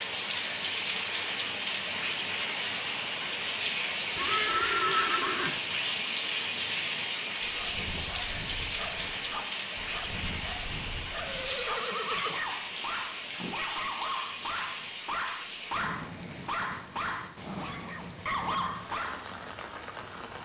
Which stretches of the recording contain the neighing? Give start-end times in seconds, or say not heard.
4.2-5.6, 11.2-12.3.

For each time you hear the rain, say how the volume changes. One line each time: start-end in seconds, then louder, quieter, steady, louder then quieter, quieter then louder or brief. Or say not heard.
0.0-20.3 quieter.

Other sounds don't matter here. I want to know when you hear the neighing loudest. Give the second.
5 s.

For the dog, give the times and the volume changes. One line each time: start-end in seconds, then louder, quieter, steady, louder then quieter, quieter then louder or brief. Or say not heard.
7.4-19.2 louder.